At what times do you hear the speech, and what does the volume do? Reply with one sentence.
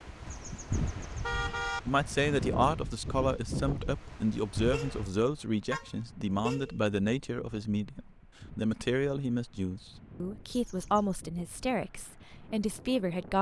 You can hear the speech from 1.9 to 13.3 s, at a steady volume.